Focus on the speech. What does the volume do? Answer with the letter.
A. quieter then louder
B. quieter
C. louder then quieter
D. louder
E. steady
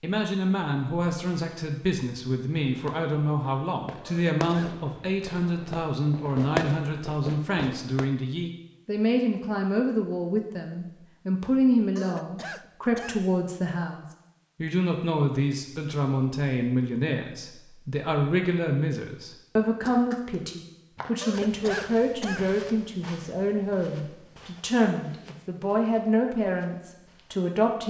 E.